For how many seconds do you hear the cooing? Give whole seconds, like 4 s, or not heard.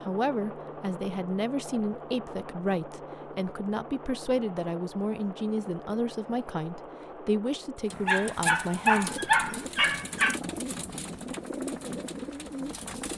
5 s.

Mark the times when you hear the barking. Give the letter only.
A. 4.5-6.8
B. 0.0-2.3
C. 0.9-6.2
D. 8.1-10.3
D.